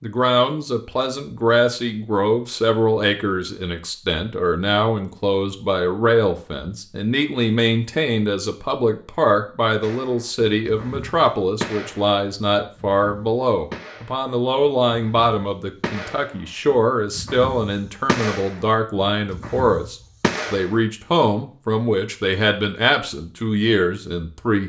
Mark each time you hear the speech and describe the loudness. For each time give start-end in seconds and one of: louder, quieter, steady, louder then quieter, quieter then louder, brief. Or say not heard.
0.0-24.6 steady.